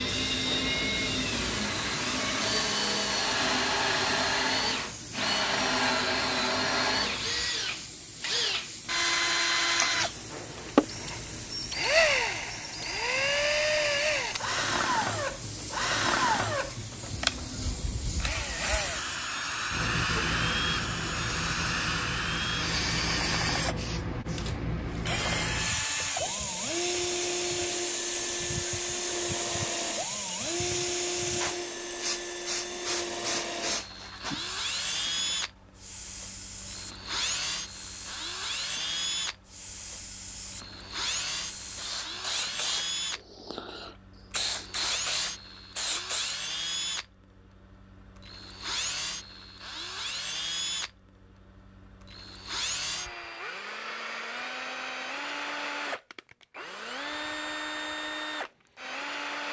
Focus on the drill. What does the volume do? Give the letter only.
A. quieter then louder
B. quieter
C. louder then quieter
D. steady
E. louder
B.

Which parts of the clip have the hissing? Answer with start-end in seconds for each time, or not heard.
0.0-46.4.